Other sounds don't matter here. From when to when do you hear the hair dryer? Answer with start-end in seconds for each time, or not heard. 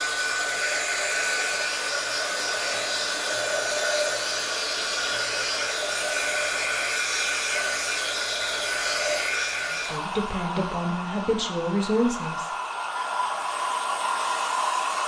0.0-15.0.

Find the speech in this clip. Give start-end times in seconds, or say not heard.
9.9-12.5.